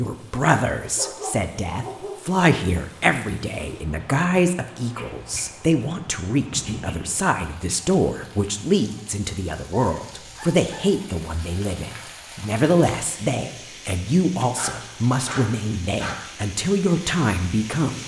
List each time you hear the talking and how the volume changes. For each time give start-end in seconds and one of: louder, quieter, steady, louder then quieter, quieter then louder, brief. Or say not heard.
0.0-18.0 steady.